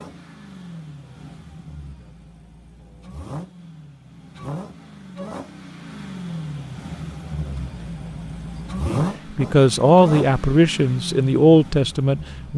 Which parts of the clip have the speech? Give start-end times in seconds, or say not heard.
8.8-12.5.